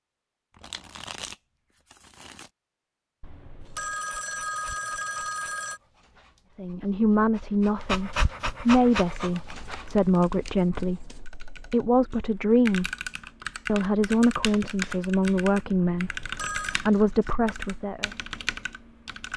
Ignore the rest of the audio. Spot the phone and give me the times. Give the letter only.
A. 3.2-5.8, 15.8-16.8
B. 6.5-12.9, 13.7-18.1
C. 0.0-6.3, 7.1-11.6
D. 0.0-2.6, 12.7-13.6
A.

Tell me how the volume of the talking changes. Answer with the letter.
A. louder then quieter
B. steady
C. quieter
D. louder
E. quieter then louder
B.